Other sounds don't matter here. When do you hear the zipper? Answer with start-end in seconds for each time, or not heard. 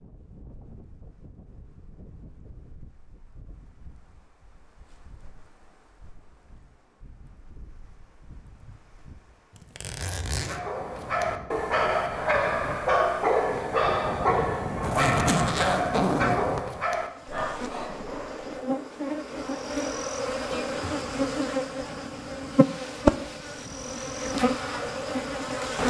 9.6-10.6, 14.8-16.6.